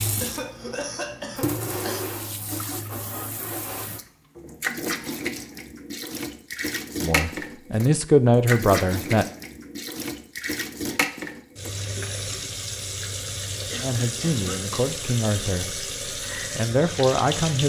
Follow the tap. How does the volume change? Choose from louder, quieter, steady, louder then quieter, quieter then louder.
steady.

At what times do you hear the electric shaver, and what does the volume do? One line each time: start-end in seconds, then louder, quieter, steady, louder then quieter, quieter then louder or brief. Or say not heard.
not heard.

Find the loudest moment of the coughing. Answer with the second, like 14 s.
1 s.